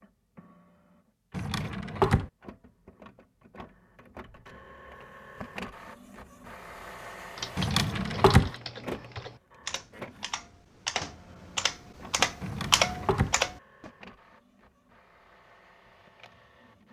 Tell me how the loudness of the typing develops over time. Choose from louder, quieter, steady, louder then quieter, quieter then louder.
louder.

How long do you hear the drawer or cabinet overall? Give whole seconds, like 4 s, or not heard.
3 s.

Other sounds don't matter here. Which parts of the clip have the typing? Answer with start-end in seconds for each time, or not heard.
7.3-13.9.